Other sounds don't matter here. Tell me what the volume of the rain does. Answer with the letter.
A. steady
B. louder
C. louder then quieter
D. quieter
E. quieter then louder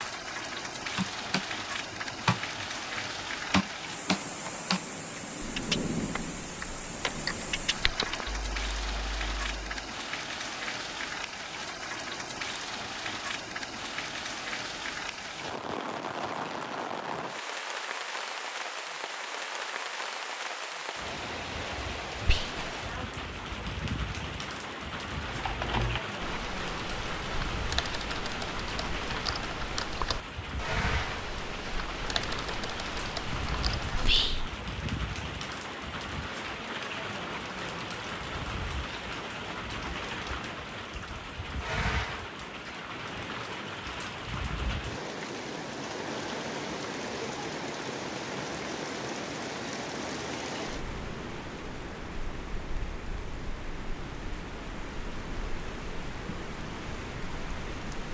A.